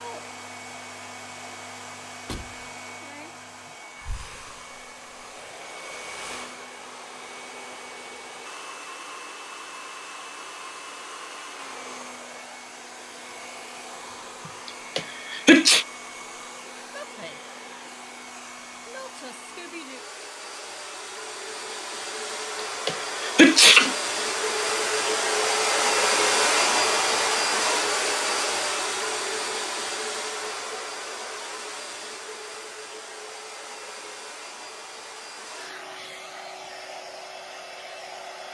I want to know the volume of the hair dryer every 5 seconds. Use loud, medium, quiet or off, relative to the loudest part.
quiet, quiet, quiet, quiet, medium, loud, quiet, quiet.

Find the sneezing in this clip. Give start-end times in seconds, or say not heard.
14.9-15.8, 22.9-23.9.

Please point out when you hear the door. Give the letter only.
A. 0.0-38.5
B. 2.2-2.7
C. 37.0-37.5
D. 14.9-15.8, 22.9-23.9
B.